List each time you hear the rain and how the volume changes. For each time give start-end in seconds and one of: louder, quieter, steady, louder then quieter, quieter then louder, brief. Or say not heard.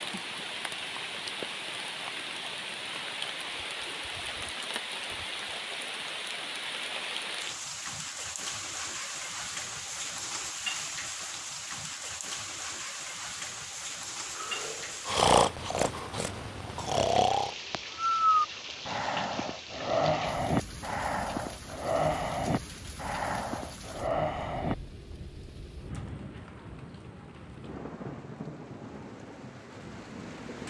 0.0-30.6 quieter.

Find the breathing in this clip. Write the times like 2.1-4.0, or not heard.
14.3-24.8.